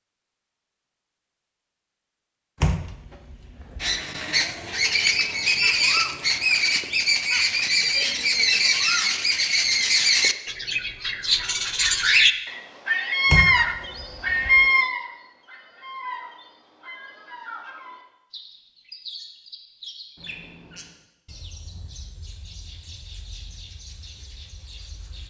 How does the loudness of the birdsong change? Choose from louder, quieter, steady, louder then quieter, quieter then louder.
quieter.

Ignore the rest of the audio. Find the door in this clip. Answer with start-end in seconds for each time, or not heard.
2.6-4.0, 13.3-14.7.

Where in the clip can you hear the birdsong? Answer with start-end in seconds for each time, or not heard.
3.8-25.2.